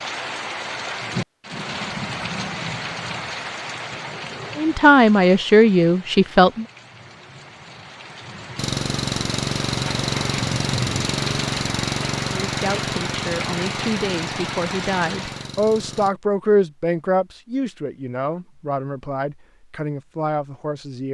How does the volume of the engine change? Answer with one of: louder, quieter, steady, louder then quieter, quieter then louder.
quieter.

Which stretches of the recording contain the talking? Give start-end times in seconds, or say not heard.
4.5-6.7, 12.2-21.0.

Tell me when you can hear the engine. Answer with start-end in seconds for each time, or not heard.
8.6-16.1.